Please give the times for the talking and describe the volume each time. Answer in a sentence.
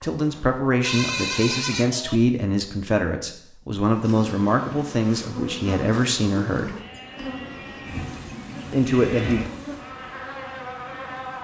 The talking can be heard from 0.0 to 6.8 s, at a steady volume; and briefly from 8.7 to 9.4 s.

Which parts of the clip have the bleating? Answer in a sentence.
The bleating can be heard from 0.8 to 2.2 s and from 6.8 to 9.5 s.